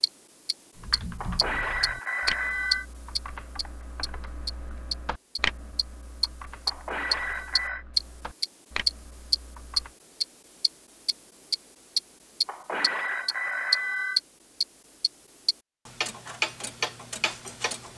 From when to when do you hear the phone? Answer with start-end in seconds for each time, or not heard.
1.2-2.9, 6.7-7.8, 12.4-14.2.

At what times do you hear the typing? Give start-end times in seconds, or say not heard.
0.8-9.9.